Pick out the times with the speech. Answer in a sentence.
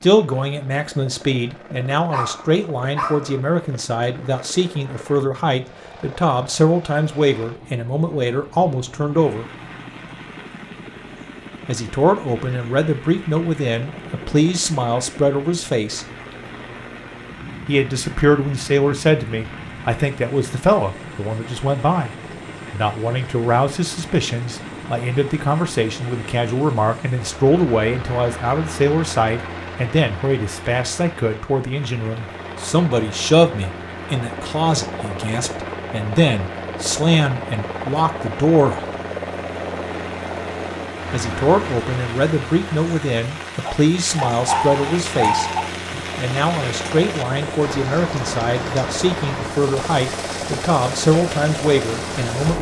The speech can be heard from 0.0 to 9.4 s, from 11.7 to 16.1 s, from 17.6 to 22.1 s, from 22.7 to 38.9 s and from 41.1 to 52.5 s.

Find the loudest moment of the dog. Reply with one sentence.
The volume of the dog peaks at 45 seconds.